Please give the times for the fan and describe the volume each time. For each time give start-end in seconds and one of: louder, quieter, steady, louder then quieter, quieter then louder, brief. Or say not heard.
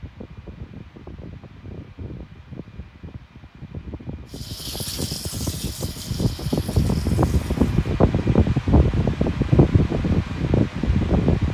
0.0-11.4 louder.